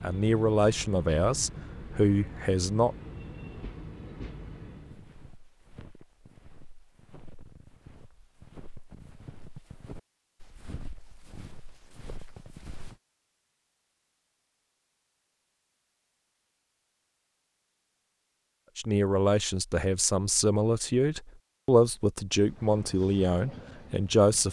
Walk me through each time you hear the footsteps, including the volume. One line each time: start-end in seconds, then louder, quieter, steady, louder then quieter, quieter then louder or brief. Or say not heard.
4.8-13.0 louder.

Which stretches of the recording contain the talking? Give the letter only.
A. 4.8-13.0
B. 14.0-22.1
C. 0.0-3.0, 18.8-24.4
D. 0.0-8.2
C.